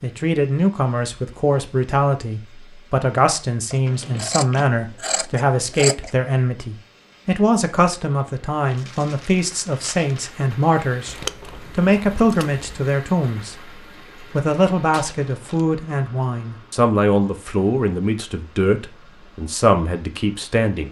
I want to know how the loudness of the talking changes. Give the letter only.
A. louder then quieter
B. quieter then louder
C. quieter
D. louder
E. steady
E.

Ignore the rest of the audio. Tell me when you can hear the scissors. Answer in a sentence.
The scissors can be heard from 3.7 to 6.1 s and from 11.1 to 12.7 s.